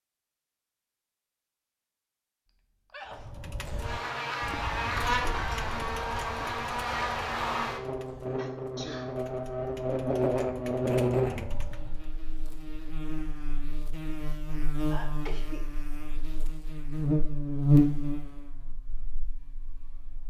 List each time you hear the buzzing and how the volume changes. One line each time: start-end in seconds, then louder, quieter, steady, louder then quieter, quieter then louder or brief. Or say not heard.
3.5-20.2 quieter then louder.